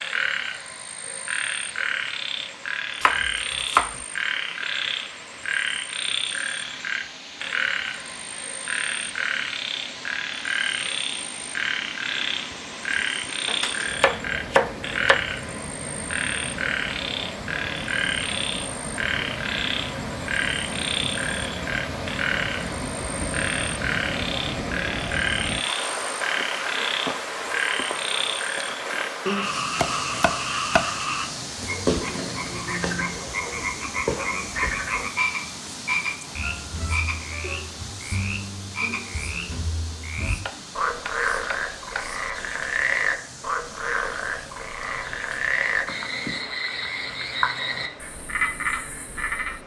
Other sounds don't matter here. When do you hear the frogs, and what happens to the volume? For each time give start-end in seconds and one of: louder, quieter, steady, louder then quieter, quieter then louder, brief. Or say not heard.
0.0-49.6 steady.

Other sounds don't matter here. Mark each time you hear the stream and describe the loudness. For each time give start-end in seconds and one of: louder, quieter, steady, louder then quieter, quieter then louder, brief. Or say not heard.
0.0-49.6 louder then quieter.